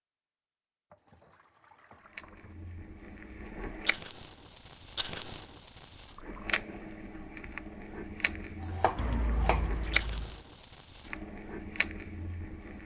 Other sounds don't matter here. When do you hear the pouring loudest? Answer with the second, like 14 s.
9 s.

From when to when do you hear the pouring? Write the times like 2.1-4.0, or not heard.
0.9-2.5, 6.0-6.5, 8.9-10.4.